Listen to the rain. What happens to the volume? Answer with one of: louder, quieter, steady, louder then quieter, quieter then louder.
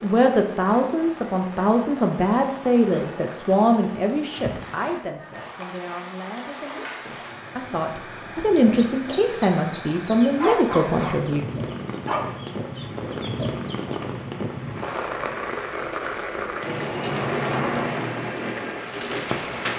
louder.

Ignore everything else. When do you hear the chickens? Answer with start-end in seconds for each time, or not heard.
8.8-14.1.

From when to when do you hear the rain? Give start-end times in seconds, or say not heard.
0.0-19.7.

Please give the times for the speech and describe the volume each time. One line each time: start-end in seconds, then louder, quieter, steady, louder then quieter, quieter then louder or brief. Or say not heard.
0.0-11.4 quieter then louder.